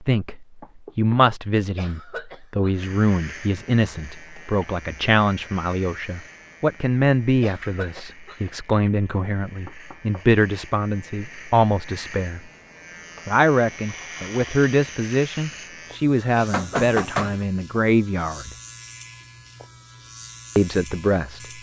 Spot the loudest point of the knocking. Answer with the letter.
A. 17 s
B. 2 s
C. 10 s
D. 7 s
A.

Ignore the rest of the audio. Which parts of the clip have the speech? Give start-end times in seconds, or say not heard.
0.0-12.4, 13.2-18.6, 20.6-21.4.